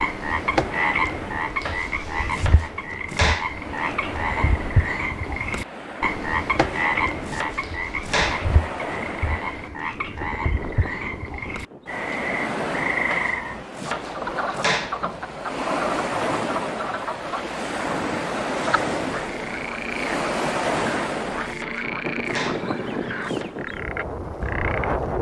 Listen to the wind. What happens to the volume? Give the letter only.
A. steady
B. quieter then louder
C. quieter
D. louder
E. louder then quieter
D.